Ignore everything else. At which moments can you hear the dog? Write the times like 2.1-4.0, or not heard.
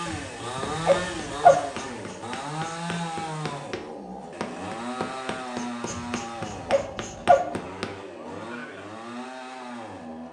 0.1-1.6, 5.9-7.5.